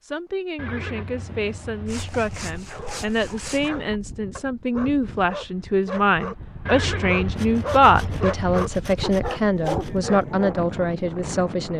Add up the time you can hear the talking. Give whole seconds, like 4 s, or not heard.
12 s.